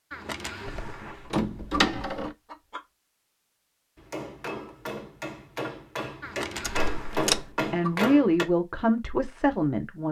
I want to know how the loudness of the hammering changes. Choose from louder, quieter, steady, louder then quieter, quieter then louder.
louder.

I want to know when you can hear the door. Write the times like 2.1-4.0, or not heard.
0.7-2.4, 6.6-7.5.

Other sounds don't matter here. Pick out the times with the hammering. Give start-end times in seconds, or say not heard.
4.0-8.4.